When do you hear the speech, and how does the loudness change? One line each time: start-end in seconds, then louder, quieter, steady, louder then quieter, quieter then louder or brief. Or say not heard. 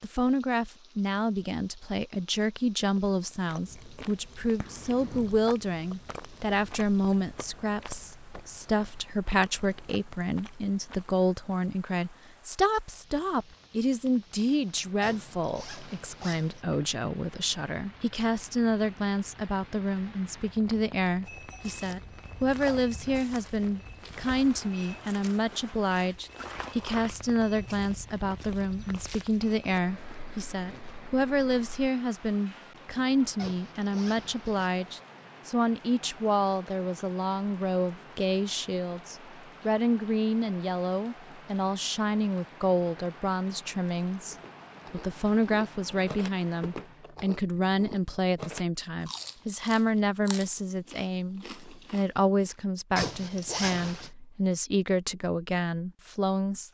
0.0-56.7 steady.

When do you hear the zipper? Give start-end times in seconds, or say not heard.
15.0-16.6, 33.4-34.7, 53.0-54.1.